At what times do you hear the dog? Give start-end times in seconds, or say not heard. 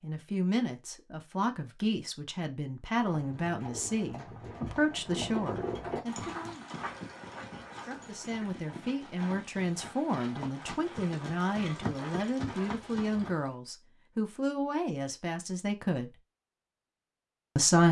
6.8-8.3.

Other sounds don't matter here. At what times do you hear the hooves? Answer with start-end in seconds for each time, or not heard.
3.0-13.6.